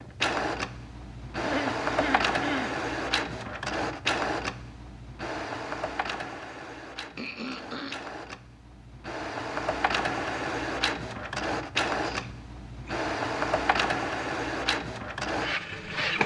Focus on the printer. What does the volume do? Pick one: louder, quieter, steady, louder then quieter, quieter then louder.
quieter then louder.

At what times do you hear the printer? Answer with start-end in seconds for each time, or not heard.
0.0-16.2.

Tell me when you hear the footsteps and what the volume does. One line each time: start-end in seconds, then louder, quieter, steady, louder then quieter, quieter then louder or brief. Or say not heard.
not heard.